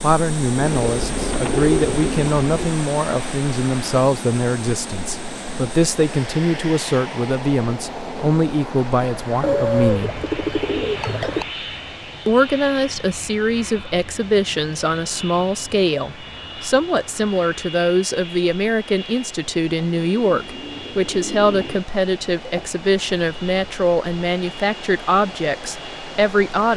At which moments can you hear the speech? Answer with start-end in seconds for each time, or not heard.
0.0-10.2, 12.2-26.7.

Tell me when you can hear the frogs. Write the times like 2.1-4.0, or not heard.
not heard.